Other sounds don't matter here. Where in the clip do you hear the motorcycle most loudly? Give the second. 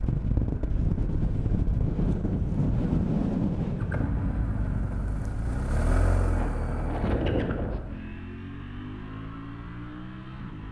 6 s.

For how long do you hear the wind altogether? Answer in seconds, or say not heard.
8 s.